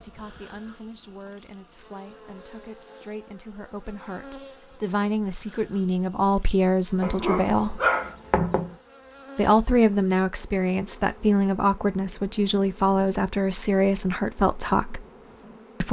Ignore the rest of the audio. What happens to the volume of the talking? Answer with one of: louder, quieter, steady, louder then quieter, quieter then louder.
louder.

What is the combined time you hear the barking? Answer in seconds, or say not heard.
2 s.